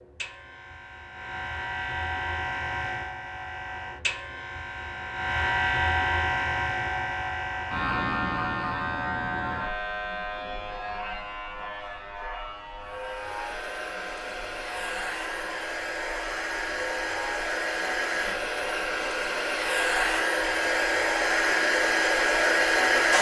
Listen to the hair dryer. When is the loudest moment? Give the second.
23 s.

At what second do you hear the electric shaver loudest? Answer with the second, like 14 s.
6 s.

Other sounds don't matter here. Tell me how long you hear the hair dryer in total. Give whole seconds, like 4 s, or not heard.
10 s.